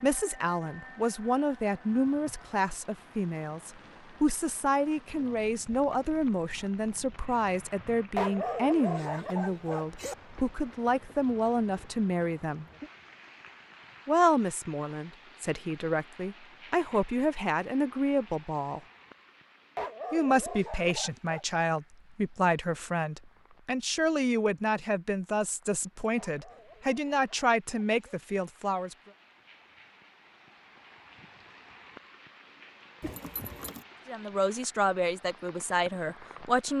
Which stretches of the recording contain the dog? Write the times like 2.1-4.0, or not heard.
8.2-10.2, 19.8-21.4, 26.1-28.2.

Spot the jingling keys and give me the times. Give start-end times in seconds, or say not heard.
33.0-33.9.